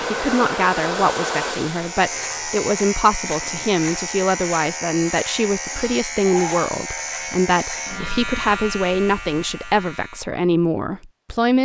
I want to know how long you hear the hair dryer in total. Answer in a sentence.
You can hear the hair dryer for 3 seconds altogether.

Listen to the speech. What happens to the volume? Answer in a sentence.
The volume of the speech stays about the same.